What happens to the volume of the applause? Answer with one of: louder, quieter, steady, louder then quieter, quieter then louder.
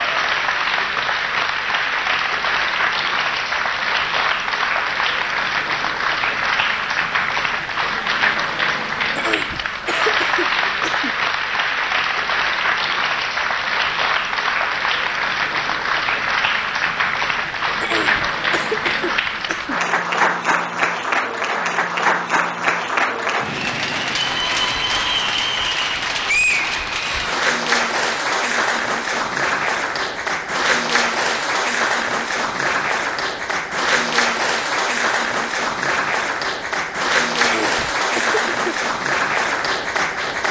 steady.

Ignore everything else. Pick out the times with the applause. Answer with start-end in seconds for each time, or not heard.
0.0-40.4.